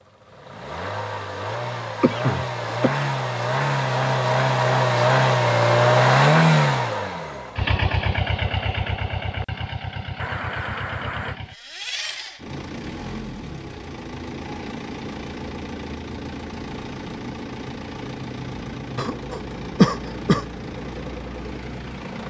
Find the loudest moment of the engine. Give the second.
6 s.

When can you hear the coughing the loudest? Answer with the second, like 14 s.
20 s.